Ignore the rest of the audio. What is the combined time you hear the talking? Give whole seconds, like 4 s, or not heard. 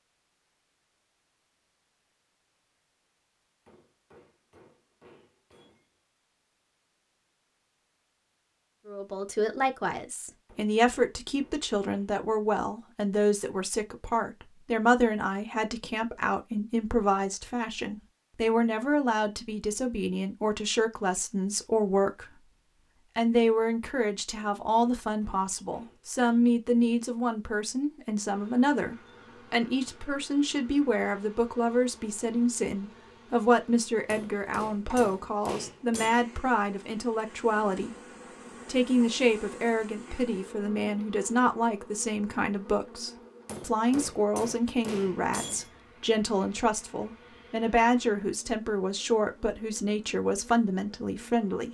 43 s.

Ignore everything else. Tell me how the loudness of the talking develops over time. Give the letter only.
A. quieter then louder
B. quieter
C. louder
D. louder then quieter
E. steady
E.